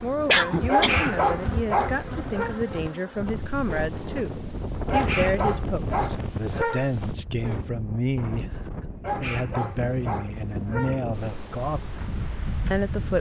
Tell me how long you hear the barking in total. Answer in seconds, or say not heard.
6 s.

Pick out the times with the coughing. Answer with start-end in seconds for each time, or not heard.
0.2-1.1.